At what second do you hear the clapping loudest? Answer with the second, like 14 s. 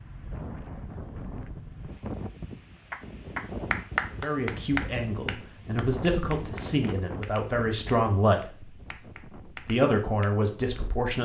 4 s.